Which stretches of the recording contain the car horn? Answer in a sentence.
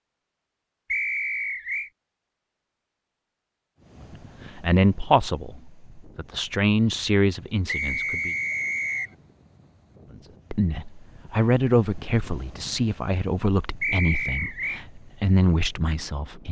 The car horn can't be heard in this clip.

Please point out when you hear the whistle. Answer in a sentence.
The whistle can be heard from 0.9 to 1.9 s, from 7.7 to 9.1 s and from 13.8 to 14.8 s.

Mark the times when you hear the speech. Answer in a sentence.
You can hear the speech from 4.5 to 8.3 s and from 10.5 to 16.4 s.